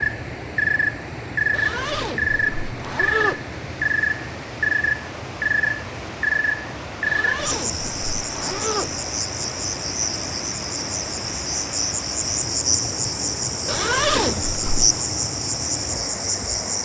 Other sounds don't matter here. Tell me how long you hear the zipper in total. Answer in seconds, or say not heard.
5 s.